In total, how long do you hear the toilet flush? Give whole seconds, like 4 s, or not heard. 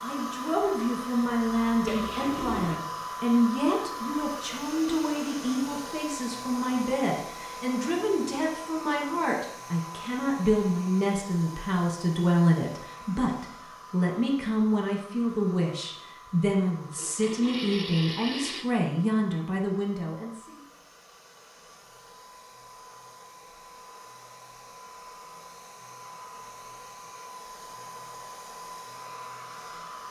3 s.